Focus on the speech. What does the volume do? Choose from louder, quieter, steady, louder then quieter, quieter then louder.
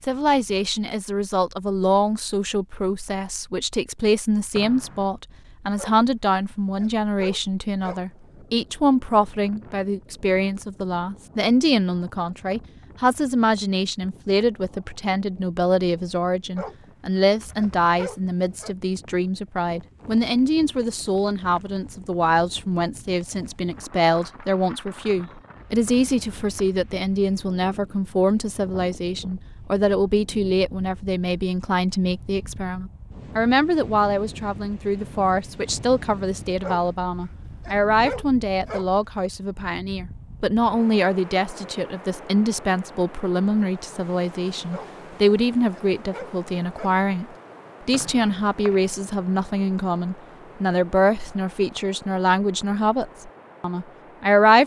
steady.